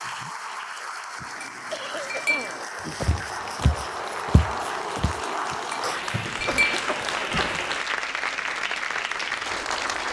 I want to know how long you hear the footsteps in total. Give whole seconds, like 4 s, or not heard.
2 s.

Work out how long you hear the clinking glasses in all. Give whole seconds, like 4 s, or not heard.
3 s.